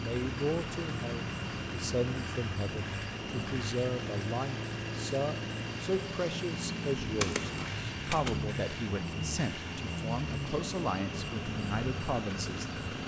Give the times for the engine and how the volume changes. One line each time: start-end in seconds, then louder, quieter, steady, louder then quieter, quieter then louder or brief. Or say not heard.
0.0-13.0 steady.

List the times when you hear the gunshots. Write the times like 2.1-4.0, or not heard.
7.0-8.4.